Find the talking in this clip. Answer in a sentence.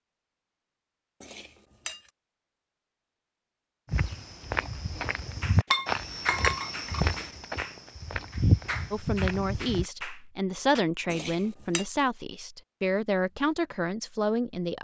The talking can be heard from 8.9 to 14.7 s.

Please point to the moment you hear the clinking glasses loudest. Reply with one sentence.
The volume of the clinking glasses peaks at 6 seconds.